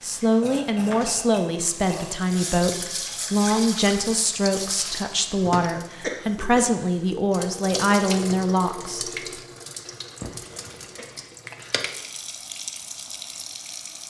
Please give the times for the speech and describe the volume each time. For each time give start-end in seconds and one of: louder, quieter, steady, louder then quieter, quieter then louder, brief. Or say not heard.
0.0-9.1 steady.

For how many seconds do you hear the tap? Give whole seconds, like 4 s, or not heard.
14 s.